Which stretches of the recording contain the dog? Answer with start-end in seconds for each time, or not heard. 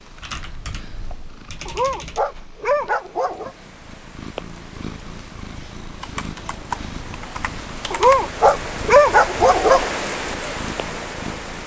1.6-3.5, 7.9-9.9.